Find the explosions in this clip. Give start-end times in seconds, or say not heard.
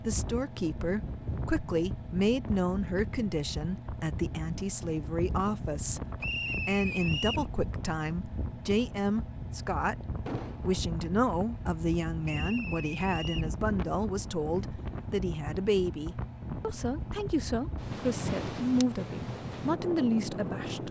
10.2-10.8.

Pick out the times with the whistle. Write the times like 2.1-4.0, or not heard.
6.2-7.5, 12.2-13.5.